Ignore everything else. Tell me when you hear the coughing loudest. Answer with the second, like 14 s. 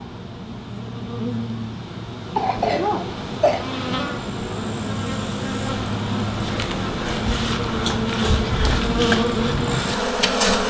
3 s.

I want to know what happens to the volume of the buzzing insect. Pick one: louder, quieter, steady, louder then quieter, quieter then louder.
louder.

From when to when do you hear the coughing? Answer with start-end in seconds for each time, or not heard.
2.4-3.6, 7.8-9.2.